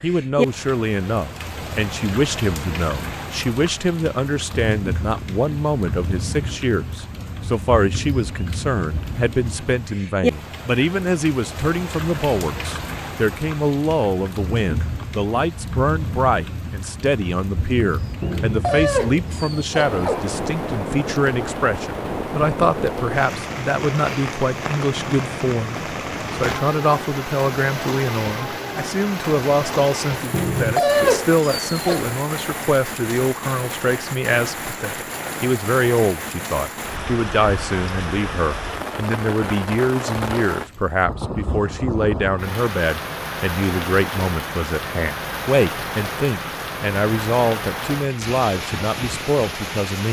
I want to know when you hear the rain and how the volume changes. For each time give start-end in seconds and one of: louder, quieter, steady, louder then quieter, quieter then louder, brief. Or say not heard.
0.0-50.0 steady.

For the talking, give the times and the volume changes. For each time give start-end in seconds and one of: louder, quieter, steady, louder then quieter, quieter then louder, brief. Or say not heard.
0.0-50.0 steady.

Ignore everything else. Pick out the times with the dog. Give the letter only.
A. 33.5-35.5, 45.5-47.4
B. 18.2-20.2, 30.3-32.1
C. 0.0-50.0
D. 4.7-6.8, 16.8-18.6
B.